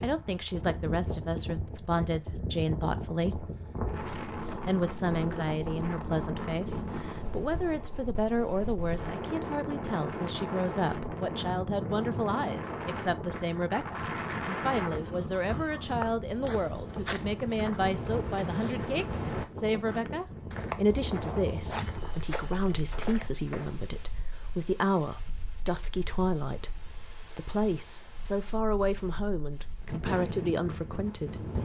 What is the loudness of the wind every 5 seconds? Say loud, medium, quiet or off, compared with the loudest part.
loud, loud, loud, loud, medium, quiet, loud.